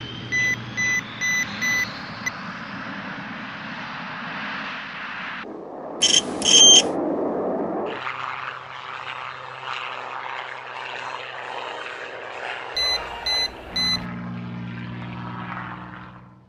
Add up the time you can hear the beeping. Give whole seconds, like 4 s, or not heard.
4 s.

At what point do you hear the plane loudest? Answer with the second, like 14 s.
7 s.